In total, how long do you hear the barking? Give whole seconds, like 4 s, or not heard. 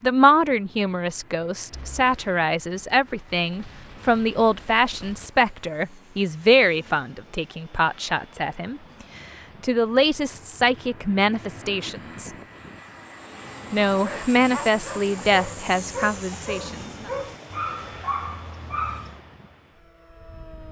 5 s.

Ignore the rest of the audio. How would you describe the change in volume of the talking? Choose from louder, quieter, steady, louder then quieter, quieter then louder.
steady.